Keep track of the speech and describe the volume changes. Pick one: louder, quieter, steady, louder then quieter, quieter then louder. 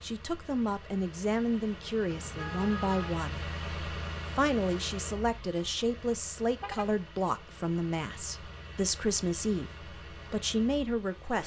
steady.